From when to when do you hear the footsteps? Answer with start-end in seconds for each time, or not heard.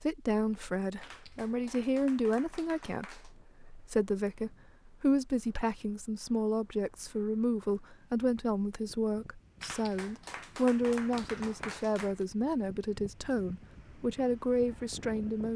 not heard.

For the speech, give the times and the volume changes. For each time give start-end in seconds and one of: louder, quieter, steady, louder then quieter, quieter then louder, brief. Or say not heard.
0.0-15.5 steady.